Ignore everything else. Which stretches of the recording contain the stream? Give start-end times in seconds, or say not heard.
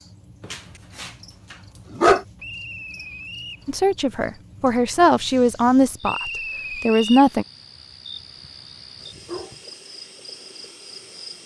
not heard.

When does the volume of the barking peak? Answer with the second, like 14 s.
2 s.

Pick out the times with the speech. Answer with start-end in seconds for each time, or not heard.
3.6-7.5.